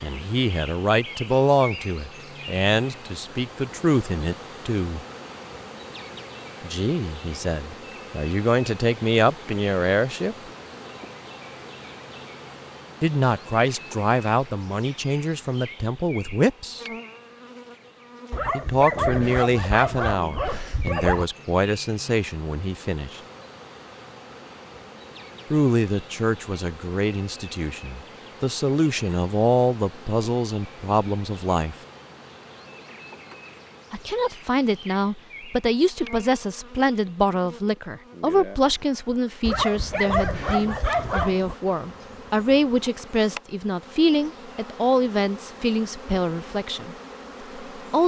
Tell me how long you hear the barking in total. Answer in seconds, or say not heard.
5 s.